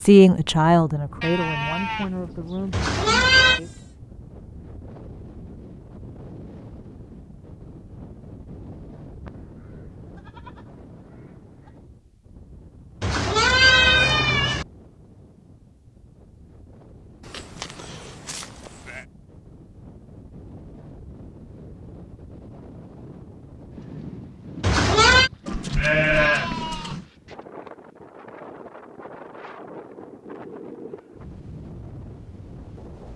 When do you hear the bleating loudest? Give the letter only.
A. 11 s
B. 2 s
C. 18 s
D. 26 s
D.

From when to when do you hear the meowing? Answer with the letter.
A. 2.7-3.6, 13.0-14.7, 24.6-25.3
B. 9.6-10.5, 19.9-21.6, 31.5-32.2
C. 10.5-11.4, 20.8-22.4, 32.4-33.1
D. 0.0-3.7
A.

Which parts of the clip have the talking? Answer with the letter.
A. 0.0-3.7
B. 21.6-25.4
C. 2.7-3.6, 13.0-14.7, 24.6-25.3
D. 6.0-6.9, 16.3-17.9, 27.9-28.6
A.